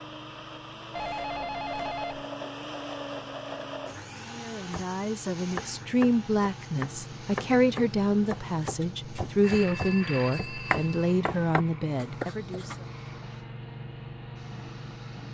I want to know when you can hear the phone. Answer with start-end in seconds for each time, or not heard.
0.9-2.2, 9.4-11.2.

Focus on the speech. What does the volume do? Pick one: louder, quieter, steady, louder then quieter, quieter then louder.
steady.